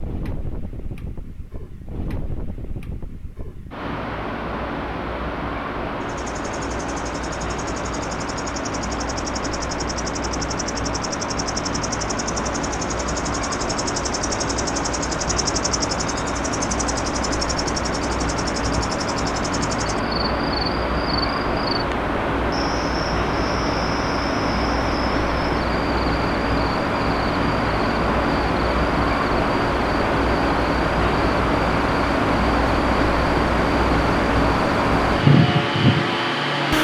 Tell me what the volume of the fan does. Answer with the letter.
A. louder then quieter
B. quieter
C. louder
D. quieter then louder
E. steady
C.